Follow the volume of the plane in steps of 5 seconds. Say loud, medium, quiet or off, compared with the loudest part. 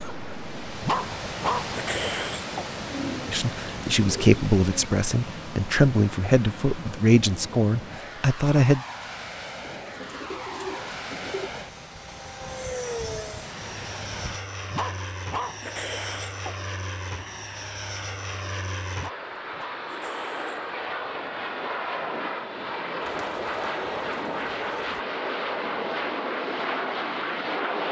quiet, medium, medium, medium, loud, loud.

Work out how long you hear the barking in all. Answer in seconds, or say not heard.
5 s.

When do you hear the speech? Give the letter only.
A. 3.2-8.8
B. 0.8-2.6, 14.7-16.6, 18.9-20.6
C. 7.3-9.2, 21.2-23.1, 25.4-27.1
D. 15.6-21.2
A.